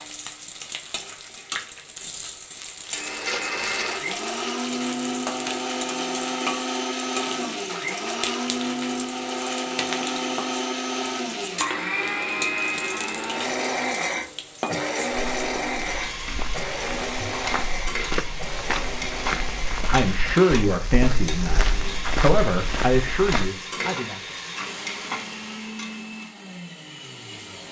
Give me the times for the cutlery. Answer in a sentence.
You can't hear the cutlery here.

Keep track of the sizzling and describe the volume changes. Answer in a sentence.
The volume of the sizzling stays about the same.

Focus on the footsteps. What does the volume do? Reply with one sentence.
The volume of the footsteps goes up.